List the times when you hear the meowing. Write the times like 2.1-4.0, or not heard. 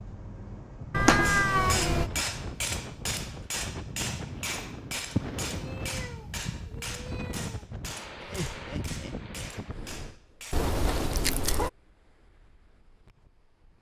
0.9-2.1, 5.2-7.7, 10.5-11.7.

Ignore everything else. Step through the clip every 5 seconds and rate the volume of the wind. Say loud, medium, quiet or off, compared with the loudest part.
loud, loud, quiet.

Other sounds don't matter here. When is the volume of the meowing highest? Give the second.
1 s.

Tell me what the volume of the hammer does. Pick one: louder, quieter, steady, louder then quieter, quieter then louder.
quieter.